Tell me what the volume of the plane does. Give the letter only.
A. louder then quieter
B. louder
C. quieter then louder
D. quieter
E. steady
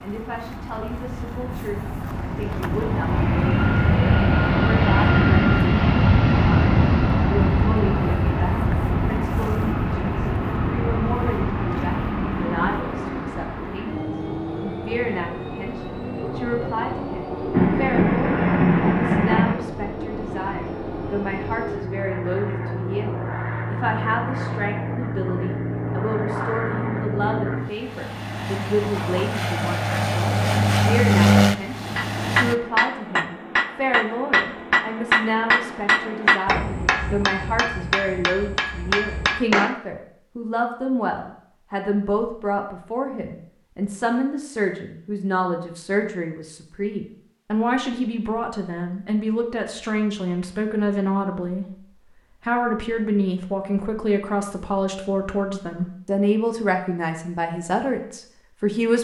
C.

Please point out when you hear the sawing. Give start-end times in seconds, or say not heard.
not heard.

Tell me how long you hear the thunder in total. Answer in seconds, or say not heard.
2 s.